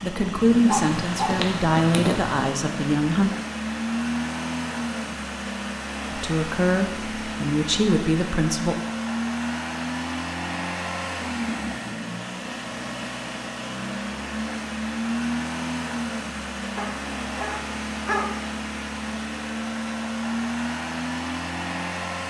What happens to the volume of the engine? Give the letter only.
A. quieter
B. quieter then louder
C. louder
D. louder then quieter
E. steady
E.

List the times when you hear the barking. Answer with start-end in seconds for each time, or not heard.
0.7-2.4, 16.8-18.4.